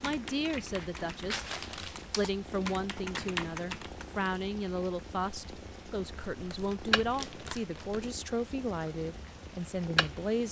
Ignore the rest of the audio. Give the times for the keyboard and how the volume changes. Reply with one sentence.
The keyboard can be heard from 0.0 to 4.2 s, getting louder.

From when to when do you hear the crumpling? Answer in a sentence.
The crumpling can be heard from 0.8 to 2.1 s and from 6.3 to 8.1 s.